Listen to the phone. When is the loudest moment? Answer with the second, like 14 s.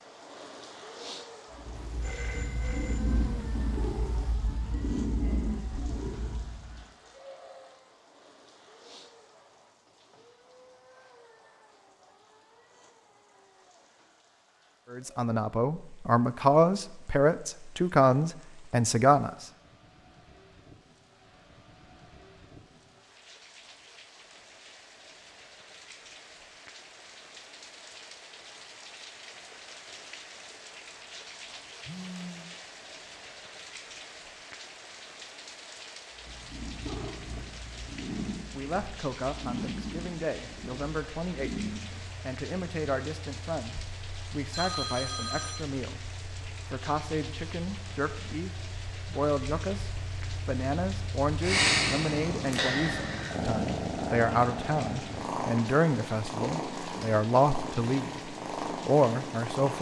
45 s.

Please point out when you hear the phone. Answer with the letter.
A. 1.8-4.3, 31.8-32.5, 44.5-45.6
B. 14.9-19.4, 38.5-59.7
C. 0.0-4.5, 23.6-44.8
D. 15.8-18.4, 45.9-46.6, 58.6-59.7
A.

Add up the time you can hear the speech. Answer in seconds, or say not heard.
26 s.